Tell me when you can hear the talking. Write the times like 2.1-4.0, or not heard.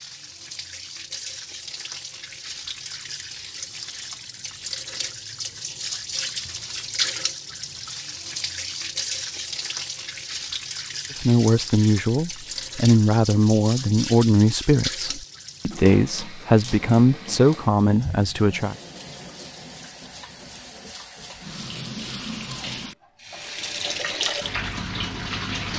11.2-18.8.